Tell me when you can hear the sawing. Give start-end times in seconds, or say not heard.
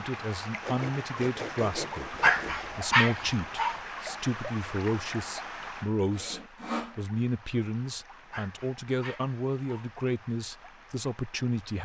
0.6-2.7, 6.1-7.0.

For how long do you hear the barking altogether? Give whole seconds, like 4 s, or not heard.
3 s.